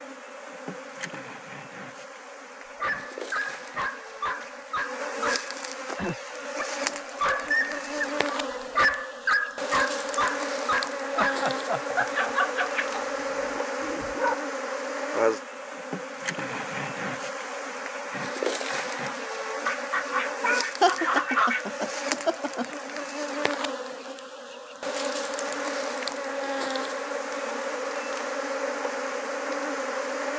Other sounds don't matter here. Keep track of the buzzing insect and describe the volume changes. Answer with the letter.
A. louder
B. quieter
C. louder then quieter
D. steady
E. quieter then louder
A.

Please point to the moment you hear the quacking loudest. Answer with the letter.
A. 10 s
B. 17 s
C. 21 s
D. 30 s
C.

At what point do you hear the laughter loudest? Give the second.
21 s.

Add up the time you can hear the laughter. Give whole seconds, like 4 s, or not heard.
3 s.